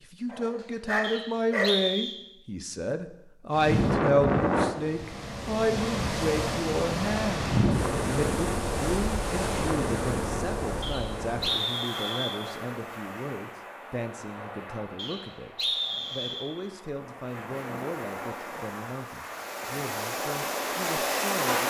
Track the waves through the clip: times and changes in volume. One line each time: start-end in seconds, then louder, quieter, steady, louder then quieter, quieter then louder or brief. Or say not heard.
3.5-21.6 quieter then louder.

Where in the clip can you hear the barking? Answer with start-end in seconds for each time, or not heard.
0.2-1.8.